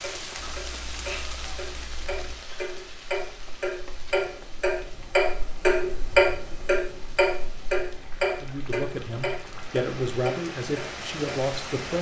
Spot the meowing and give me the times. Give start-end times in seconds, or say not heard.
0.5-2.4.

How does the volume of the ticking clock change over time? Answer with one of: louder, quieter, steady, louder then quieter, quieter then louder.
louder then quieter.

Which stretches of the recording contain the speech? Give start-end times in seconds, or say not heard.
8.4-11.9.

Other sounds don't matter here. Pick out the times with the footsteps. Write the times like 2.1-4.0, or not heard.
not heard.